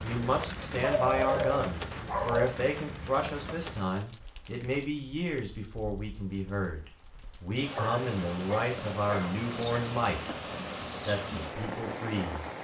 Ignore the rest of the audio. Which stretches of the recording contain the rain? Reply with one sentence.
The rain can be heard from 0.0 to 12.5 s.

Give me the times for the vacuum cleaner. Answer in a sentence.
You can't hear the vacuum cleaner here.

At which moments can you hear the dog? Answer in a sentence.
You can hear the dog from 0.8 to 2.6 s and from 7.8 to 9.3 s.